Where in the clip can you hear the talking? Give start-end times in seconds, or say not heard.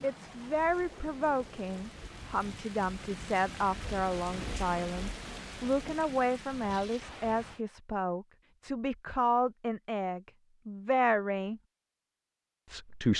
0.0-11.6, 12.7-13.1.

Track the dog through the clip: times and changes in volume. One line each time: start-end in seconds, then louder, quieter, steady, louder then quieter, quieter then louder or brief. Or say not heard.
not heard.